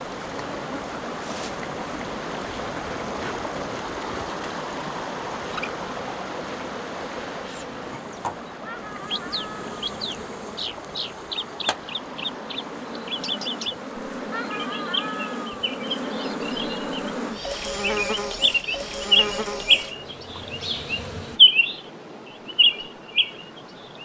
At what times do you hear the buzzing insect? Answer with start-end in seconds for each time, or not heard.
0.0-21.4.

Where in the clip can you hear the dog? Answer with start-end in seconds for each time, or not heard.
not heard.